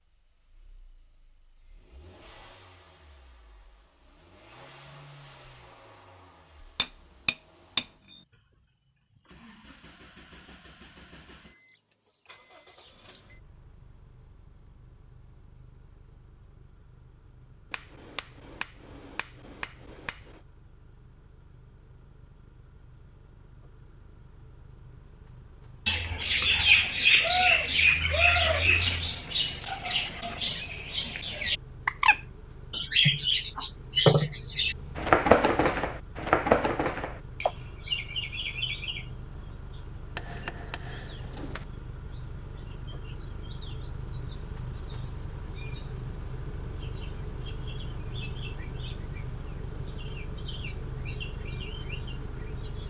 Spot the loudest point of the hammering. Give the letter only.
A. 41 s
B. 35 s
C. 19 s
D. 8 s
D.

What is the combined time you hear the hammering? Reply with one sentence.
The hammering can be heard for 6 seconds in total.